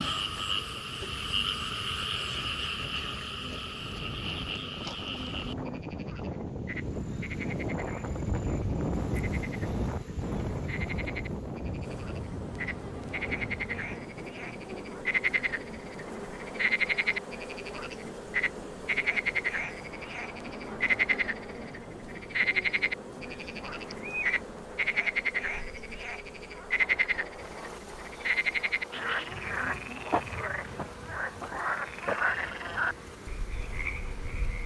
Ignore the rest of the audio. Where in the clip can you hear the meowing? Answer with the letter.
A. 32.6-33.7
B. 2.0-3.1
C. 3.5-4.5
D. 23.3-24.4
D.